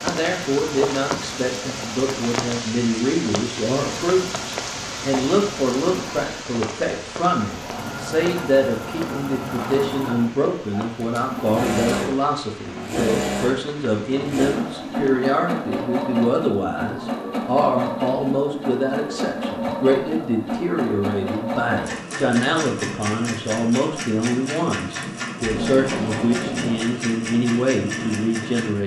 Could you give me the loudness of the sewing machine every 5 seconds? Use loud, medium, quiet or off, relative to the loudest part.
medium, medium, loud, loud, loud, loud.